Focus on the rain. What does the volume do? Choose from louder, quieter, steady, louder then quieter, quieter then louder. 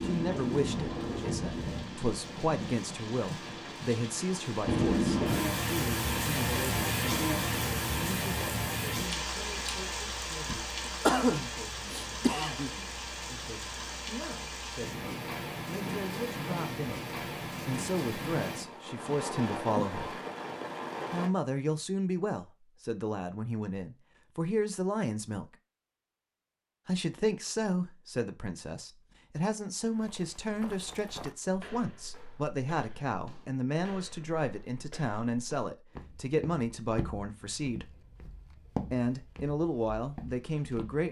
louder then quieter.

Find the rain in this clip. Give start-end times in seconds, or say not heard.
0.0-21.3.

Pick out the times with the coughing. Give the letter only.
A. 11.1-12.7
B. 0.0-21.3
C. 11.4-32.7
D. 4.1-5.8
A.